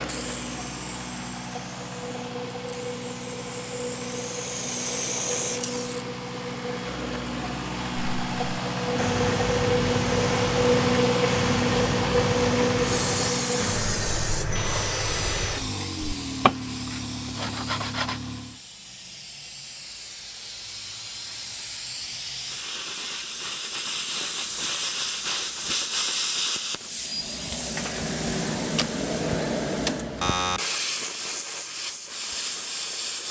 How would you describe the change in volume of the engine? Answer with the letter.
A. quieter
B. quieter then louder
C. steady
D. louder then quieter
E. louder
D.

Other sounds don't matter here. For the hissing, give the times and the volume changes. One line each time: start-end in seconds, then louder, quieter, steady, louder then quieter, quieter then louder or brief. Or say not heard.
0.0-6.0 quieter then louder
12.8-33.2 quieter then louder.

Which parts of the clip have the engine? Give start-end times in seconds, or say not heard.
0.0-18.6.